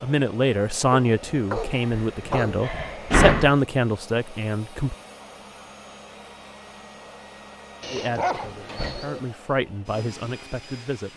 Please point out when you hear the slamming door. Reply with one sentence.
The slamming door can be heard from 1.6 to 3.5 s and from 8.5 to 9.1 s.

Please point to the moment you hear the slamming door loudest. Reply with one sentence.
The loudest moment of the slamming door is at 3 seconds.